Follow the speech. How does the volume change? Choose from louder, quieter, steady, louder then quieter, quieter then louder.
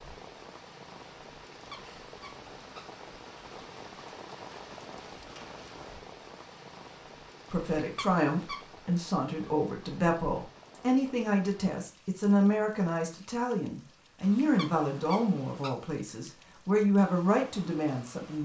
steady.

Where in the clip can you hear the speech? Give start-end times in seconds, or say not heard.
7.5-18.3.